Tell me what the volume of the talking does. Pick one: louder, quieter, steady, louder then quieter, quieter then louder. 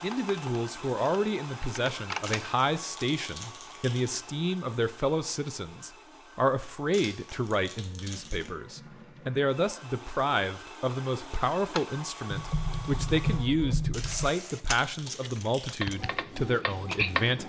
steady.